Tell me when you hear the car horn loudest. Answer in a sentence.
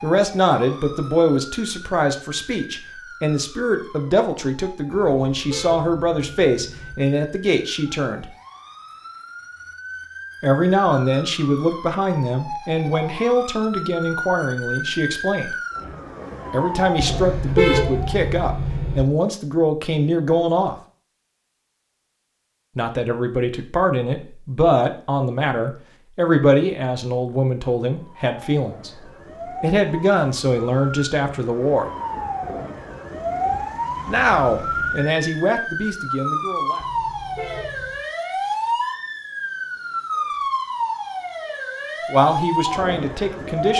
The loudest moment of the car horn is at 18 seconds.